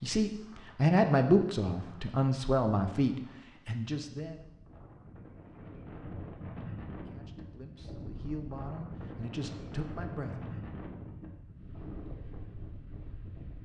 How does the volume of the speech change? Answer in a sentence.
The volume of the speech goes down.